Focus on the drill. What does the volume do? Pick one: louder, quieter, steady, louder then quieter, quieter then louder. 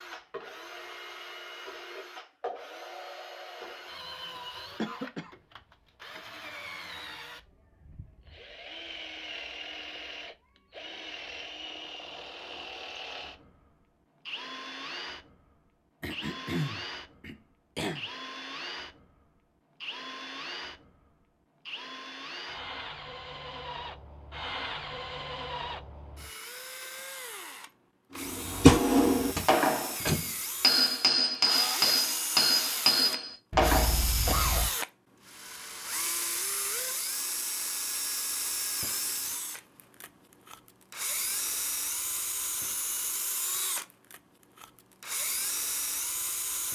louder.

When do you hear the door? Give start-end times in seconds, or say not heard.
29.4-30.3.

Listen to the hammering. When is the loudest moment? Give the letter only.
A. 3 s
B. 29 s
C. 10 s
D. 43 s
B.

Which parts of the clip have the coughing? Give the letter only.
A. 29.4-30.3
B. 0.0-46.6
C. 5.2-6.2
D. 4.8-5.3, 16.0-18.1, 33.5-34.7
D.